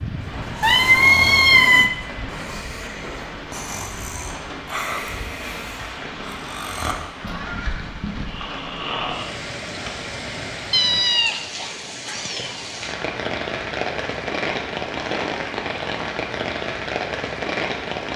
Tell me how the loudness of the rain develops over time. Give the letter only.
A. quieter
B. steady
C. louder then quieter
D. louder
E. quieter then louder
D.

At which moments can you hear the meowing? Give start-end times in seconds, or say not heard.
0.6-1.9, 10.7-12.6.